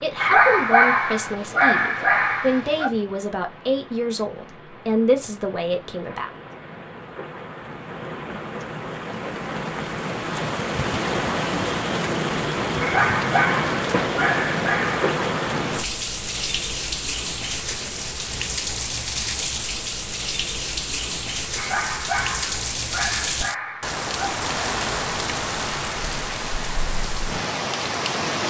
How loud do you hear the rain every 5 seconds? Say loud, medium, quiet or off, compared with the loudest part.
quiet, medium, loud, loud, loud, loud.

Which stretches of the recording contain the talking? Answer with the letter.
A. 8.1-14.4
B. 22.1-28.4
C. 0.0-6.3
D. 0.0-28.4
C.